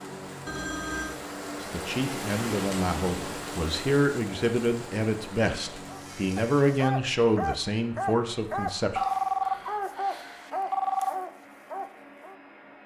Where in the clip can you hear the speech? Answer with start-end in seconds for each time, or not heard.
1.6-9.0.